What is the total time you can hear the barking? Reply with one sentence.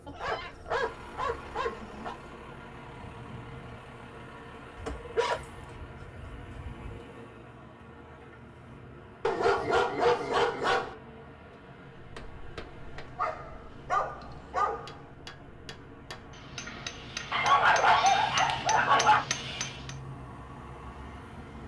You can hear the barking for 10 seconds altogether.